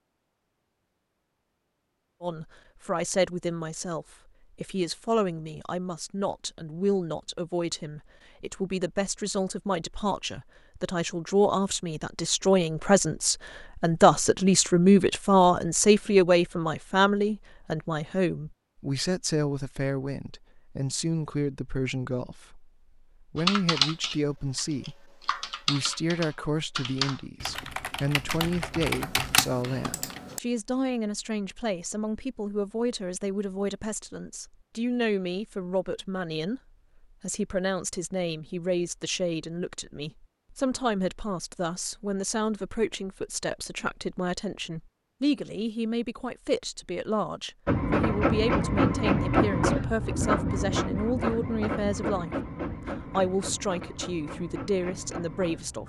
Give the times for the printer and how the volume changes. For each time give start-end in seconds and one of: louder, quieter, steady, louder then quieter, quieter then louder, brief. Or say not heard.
47.6-55.8 quieter.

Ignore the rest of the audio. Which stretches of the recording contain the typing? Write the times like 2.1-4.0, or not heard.
23.4-30.4.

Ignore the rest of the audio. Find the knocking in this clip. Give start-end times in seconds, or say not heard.
not heard.